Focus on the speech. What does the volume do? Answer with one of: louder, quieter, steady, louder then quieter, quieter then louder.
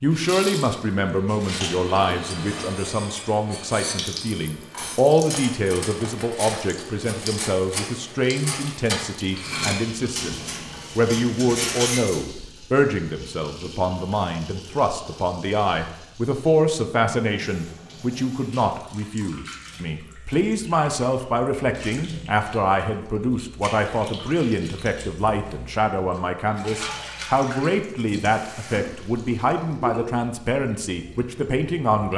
steady.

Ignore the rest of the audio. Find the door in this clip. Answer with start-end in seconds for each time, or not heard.
not heard.